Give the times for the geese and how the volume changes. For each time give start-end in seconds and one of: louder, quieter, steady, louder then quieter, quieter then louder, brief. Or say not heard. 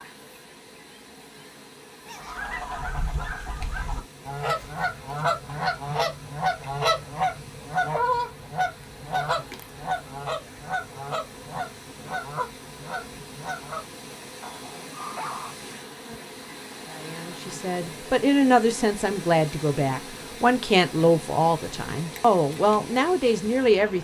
2.2-13.9 louder then quieter.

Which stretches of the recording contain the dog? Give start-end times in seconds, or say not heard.
2.0-3.9, 14.4-15.6.